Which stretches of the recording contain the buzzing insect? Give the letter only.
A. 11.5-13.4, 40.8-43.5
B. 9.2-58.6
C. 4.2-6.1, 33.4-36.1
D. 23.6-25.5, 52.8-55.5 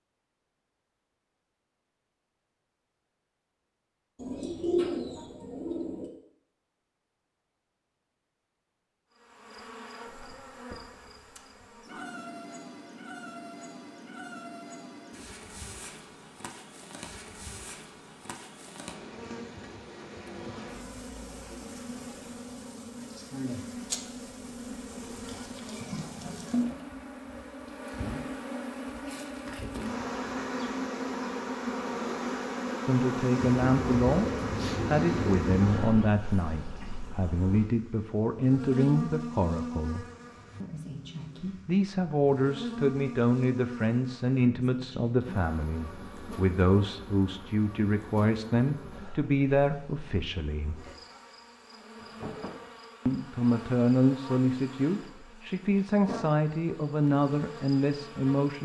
B.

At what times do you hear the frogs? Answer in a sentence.
You can't hear the frogs here.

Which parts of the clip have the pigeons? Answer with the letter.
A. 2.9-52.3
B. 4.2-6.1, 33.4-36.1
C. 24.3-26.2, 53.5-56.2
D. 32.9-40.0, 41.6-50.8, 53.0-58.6
B.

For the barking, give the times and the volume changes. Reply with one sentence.
You can't hear the barking here.